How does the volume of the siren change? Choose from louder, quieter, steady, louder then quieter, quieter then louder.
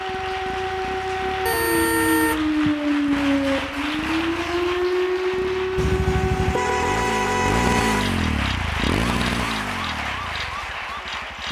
quieter.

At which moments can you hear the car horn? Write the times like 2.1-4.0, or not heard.
1.4-2.5, 5.8-8.1.